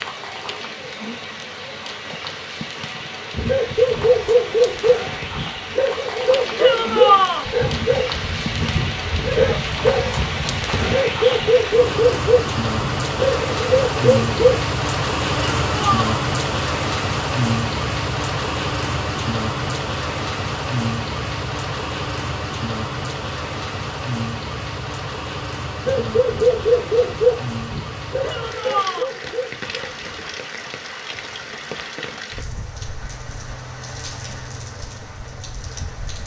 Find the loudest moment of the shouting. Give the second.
7 s.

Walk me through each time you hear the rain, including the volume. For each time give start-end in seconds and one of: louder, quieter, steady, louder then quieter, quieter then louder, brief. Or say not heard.
0.0-36.2 louder then quieter.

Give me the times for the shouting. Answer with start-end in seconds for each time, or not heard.
6.5-7.5, 15.6-16.1, 28.2-29.1.